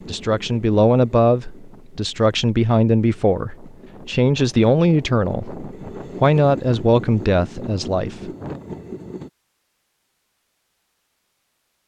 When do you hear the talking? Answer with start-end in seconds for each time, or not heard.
0.1-8.6.